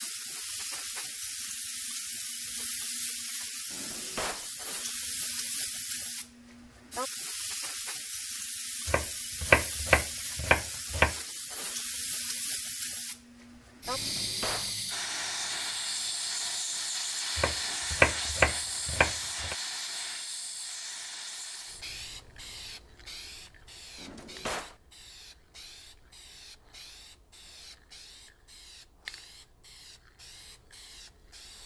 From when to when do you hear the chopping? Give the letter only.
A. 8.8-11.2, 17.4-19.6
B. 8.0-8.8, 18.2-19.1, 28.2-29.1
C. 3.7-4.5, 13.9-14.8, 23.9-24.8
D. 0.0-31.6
A.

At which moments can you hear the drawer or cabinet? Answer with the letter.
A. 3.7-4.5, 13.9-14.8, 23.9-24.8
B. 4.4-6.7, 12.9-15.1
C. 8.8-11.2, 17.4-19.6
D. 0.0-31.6
A.